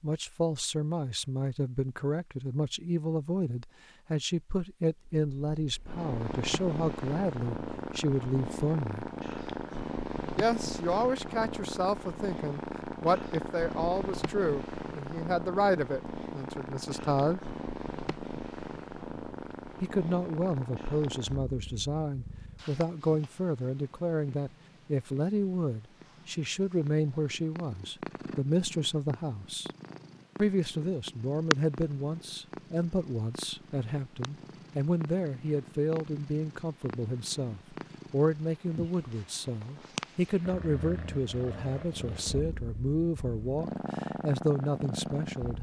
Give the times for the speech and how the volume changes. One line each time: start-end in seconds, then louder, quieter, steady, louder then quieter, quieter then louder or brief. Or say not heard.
0.0-9.1 steady
10.3-17.4 quieter
19.8-29.7 steady
30.4-45.5 steady.